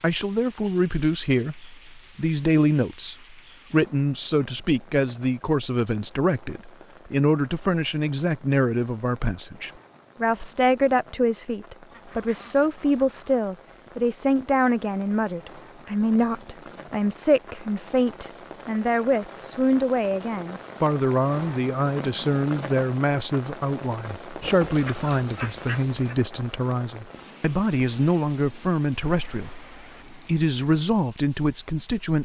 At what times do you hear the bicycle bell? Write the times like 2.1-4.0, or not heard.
not heard.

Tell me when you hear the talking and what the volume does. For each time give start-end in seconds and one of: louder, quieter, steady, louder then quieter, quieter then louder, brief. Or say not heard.
0.0-32.2 steady.